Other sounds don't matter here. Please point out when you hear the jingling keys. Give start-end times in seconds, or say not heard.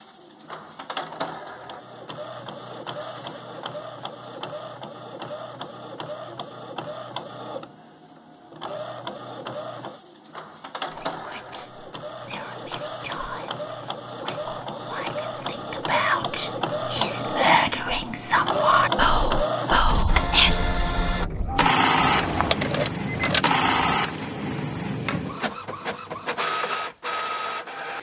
21.9-24.0.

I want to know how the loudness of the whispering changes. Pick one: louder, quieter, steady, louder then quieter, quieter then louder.
louder.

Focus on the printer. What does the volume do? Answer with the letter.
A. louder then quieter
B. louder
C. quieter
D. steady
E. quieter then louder
B.